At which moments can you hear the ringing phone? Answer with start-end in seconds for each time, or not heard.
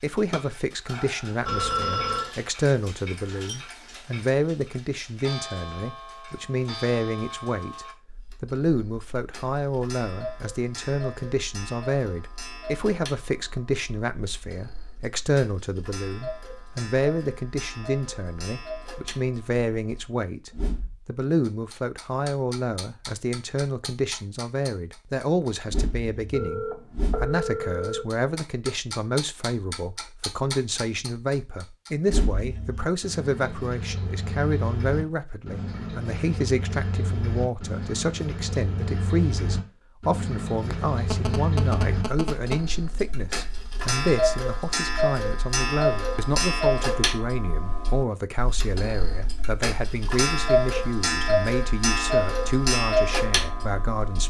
1.4-2.3, 26.3-28.1, 40.7-42.6.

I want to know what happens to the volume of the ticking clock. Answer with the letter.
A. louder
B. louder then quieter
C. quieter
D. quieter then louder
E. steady
A.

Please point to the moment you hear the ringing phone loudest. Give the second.
2 s.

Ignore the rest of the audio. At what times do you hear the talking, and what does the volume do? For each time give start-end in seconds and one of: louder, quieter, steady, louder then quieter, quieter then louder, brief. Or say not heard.
0.0-54.2 steady.